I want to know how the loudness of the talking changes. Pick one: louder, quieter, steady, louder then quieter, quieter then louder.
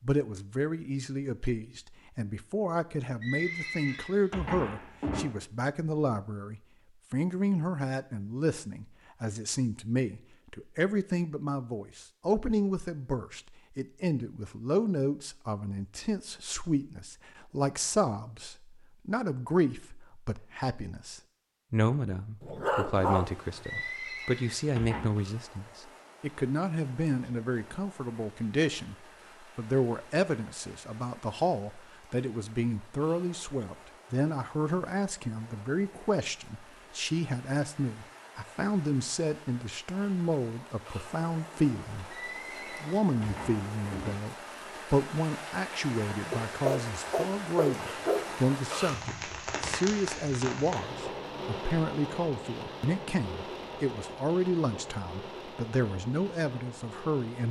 steady.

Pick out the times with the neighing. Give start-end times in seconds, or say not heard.
3.2-5.2, 23.6-25.1, 42.1-44.1.